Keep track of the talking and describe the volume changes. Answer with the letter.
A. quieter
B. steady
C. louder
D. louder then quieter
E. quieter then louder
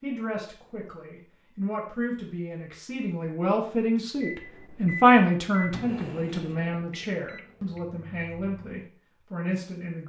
D.